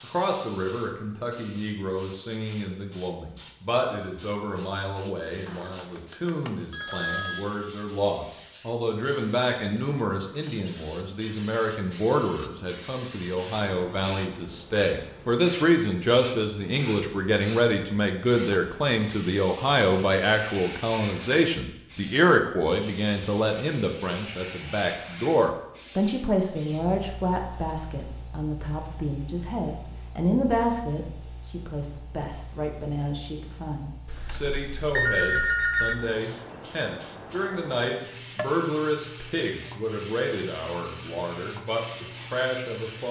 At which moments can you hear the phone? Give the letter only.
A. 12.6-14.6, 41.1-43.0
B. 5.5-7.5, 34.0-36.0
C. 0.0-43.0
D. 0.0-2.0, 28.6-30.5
B.